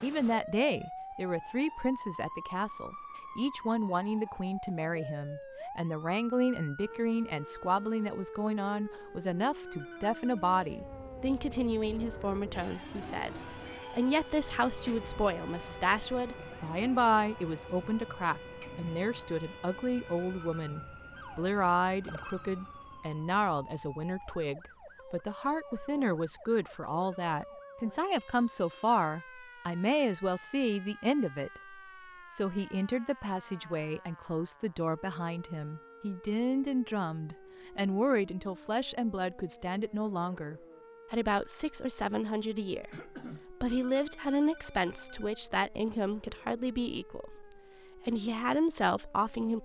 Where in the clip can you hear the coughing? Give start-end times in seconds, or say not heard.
42.9-43.5.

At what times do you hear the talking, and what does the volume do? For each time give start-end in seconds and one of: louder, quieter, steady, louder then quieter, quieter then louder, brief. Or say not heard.
0.0-49.6 steady.